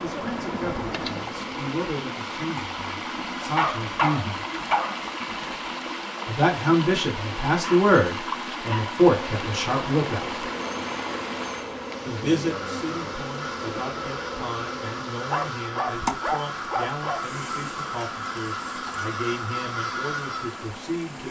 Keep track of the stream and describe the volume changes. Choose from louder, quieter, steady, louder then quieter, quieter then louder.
quieter.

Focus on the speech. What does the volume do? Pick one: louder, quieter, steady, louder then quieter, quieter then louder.
louder then quieter.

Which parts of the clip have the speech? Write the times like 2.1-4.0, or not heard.
0.0-4.5, 6.2-10.4, 12.1-21.2.